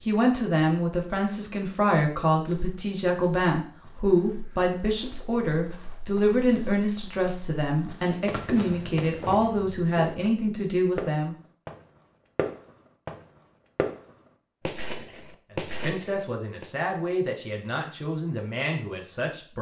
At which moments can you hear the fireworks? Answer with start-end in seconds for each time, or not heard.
8.1-16.7.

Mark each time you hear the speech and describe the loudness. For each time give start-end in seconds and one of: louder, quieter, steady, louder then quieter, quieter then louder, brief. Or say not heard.
0.1-11.3 steady
15.5-19.5 steady.